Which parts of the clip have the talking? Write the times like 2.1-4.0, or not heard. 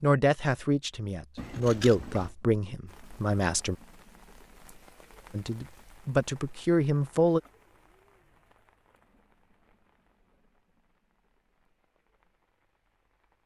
0.0-3.8, 5.3-7.4.